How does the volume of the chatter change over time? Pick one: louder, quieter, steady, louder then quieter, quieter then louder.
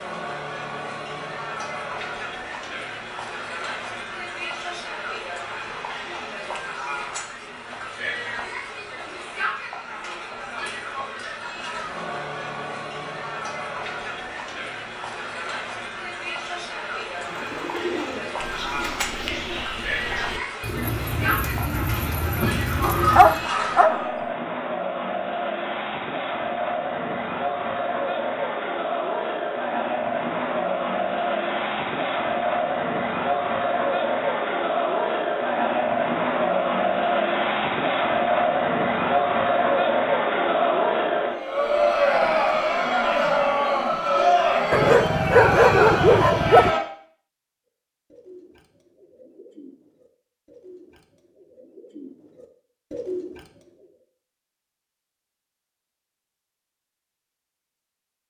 louder.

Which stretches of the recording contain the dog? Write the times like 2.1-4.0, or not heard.
22.8-24.1, 44.7-46.8.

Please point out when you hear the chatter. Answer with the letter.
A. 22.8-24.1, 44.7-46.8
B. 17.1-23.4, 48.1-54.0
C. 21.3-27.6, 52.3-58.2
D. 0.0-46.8
D.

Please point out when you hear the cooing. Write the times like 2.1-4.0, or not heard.
17.1-23.4, 48.1-54.0.